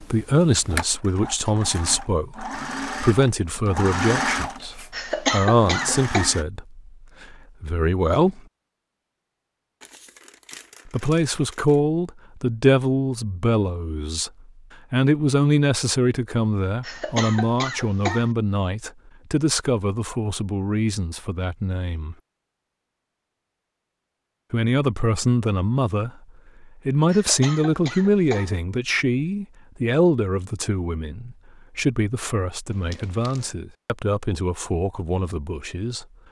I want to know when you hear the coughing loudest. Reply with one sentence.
The loudest moment of the coughing is at 5 seconds.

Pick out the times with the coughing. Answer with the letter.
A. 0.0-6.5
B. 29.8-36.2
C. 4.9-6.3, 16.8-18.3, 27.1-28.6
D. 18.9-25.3
C.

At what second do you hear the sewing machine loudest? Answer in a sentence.
The volume of the sewing machine peaks at 4 seconds.